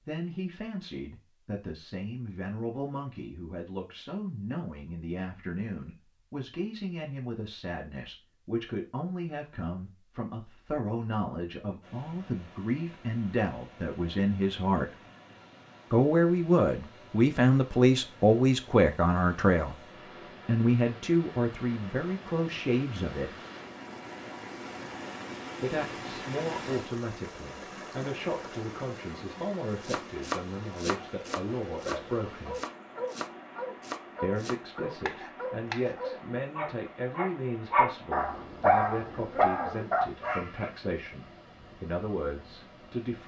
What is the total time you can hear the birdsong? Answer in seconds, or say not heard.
not heard.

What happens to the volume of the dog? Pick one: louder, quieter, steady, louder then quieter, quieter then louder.
louder.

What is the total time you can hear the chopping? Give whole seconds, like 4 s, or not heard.
6 s.